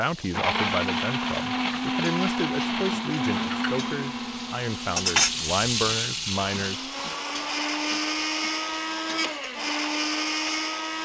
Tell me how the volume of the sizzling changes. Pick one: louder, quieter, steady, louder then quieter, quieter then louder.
louder then quieter.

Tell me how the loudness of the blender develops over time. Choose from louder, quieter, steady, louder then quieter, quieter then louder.
quieter then louder.